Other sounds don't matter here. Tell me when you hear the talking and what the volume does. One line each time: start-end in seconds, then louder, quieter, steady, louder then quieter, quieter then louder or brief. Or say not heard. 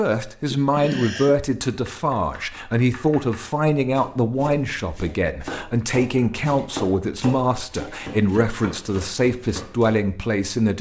0.0-10.7 steady.